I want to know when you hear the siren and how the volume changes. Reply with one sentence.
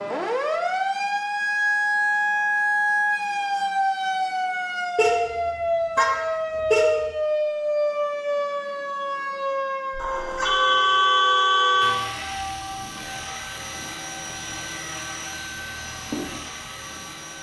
You can hear the siren from 0.0 to 17.3 s, getting quieter.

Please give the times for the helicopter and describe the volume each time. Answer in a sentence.
The helicopter can be heard from 11.8 to 17.3 s, at a steady volume.